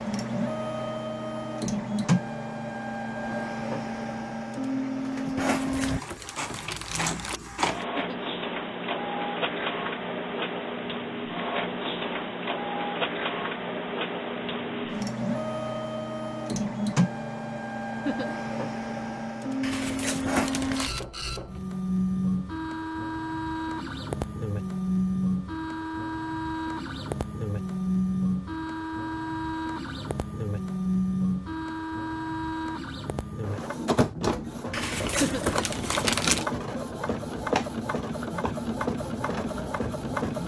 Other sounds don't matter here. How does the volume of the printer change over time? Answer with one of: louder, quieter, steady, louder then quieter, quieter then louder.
steady.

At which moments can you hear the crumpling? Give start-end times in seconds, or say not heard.
5.3-7.4, 19.6-21.1, 34.7-36.5.